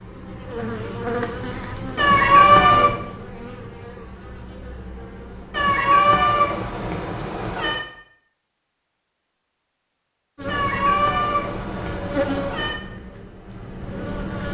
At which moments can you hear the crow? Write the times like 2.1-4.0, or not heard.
not heard.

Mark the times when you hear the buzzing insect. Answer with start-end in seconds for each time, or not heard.
0.0-5.8, 10.3-14.4.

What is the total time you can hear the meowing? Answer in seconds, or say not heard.
6 s.